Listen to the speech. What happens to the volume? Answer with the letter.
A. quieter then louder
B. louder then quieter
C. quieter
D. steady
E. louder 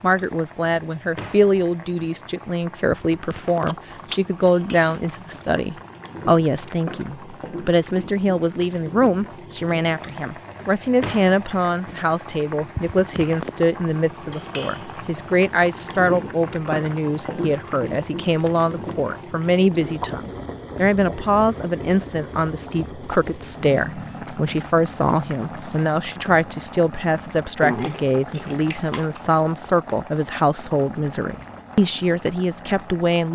D.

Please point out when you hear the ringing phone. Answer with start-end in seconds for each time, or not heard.
not heard.